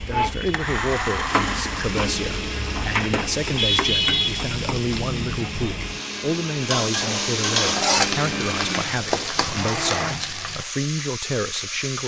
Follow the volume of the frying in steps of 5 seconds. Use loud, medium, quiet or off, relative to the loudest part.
loud, loud, medium.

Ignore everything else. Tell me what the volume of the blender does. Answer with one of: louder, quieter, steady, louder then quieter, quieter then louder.
quieter then louder.